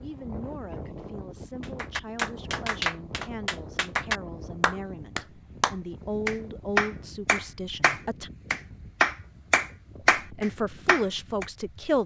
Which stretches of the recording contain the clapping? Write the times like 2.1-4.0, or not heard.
1.6-11.4.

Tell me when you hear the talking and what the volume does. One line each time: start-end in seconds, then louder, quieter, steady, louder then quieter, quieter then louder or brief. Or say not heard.
0.0-8.3 louder
10.0-12.0 brief.